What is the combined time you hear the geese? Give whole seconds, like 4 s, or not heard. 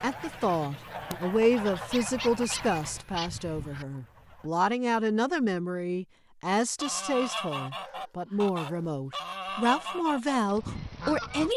9 s.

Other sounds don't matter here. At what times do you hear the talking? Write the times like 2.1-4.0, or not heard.
0.0-11.5.